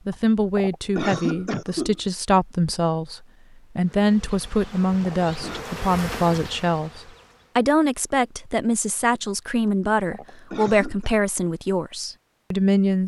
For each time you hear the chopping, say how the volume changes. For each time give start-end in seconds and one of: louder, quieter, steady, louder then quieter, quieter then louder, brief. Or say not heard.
not heard.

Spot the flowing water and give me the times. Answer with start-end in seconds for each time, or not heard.
not heard.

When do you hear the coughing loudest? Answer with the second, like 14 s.
1 s.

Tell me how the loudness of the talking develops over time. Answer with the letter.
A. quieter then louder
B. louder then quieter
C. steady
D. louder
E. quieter
C.